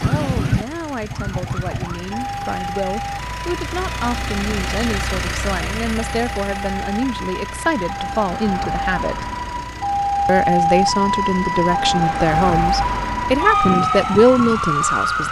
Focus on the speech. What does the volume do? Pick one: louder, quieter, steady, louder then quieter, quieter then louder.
louder.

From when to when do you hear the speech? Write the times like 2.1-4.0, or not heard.
0.0-9.3, 10.2-15.2.